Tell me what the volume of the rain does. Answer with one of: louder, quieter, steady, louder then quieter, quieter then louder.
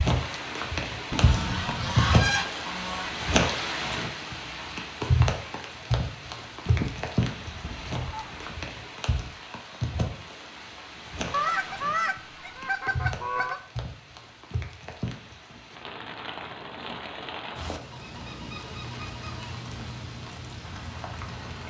quieter.